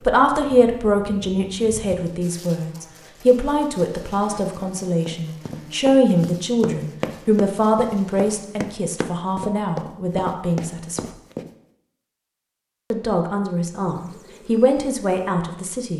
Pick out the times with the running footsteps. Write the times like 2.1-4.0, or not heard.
5.0-11.5.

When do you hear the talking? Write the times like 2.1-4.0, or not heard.
0.1-11.0, 12.9-15.9.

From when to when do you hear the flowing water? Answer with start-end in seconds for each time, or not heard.
not heard.